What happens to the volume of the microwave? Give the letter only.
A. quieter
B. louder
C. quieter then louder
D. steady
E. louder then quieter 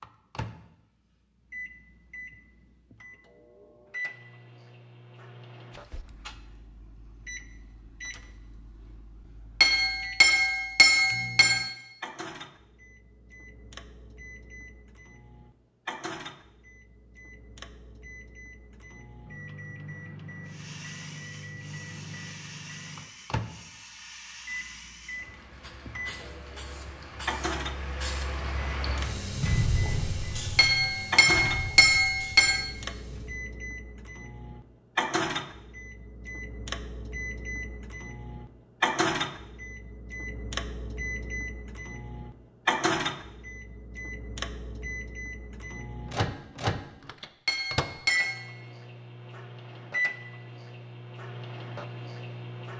B.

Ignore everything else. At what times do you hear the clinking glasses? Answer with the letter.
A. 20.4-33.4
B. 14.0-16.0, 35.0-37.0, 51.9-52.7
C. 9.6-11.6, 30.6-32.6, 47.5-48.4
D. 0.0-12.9
C.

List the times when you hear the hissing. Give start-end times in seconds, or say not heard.
20.4-33.4.